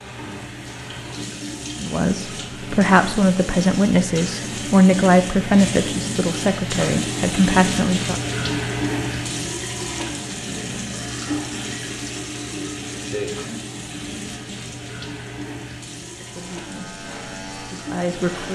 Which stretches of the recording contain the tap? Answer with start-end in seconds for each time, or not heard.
0.0-18.5.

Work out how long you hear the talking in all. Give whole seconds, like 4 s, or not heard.
8 s.